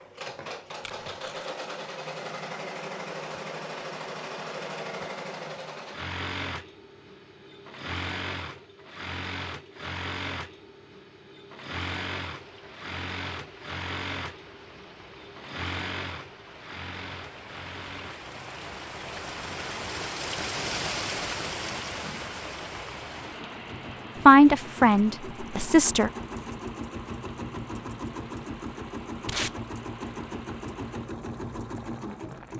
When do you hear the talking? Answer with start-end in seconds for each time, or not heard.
24.2-26.1.